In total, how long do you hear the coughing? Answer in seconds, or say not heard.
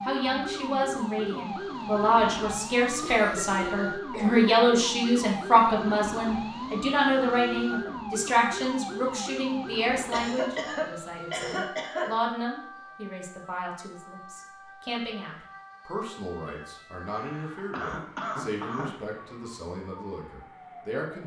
6 s.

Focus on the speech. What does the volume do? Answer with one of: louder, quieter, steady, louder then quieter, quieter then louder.
quieter.